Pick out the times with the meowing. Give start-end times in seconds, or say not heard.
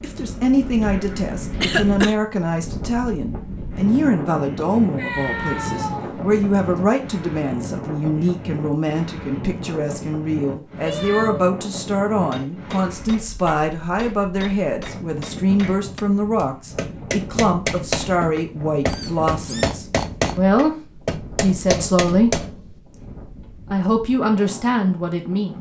5.0-7.0, 10.8-11.5, 18.9-19.8.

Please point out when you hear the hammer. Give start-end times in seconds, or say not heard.
12.3-22.7.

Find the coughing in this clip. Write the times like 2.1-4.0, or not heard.
1.6-2.1.